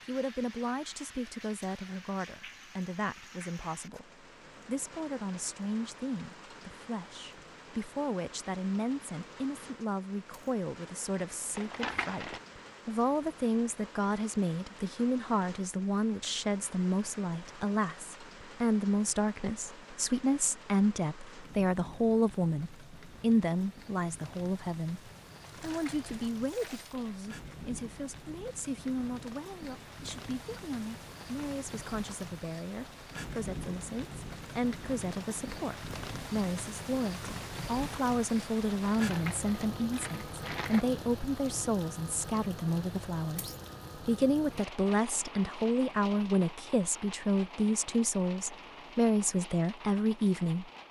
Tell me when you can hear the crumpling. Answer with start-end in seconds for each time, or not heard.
11.6-12.4, 25.6-27.1, 38.9-40.9.